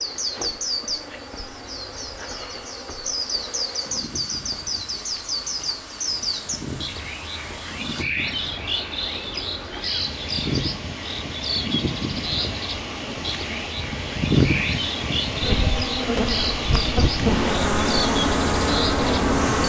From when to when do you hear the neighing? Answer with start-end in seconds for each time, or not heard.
not heard.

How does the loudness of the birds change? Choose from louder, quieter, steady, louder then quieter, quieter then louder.
steady.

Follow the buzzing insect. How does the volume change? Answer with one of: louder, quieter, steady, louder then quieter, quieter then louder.
louder.